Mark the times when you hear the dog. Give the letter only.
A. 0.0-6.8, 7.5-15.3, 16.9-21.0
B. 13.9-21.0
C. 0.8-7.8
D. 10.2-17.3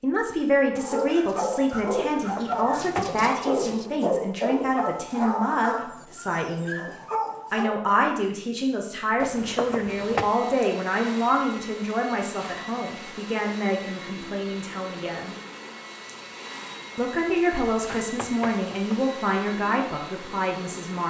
C.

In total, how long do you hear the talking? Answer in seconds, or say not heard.
19 s.